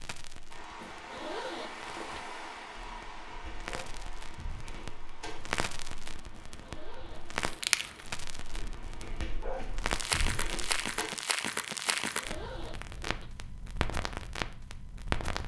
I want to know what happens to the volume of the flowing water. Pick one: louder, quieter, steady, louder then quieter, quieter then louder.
quieter.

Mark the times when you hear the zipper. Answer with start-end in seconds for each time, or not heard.
0.8-2.2, 6.5-7.8, 11.8-13.3.